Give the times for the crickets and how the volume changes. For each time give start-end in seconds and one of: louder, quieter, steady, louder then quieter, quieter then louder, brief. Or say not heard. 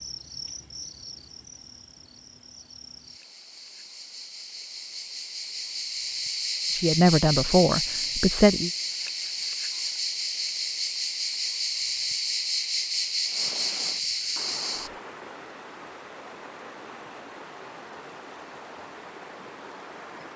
0.0-14.9 louder.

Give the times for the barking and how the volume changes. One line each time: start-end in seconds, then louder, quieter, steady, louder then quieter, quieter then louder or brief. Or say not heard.
not heard.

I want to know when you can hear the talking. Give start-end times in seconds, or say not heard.
6.8-8.7.